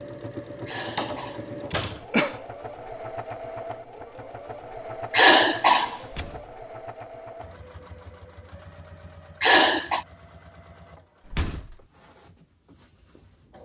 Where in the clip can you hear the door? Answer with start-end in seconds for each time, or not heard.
0.9-2.0, 6.0-6.6, 11.2-11.8.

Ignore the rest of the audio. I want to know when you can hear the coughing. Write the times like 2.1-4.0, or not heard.
0.7-2.4, 5.1-6.2, 9.4-10.1.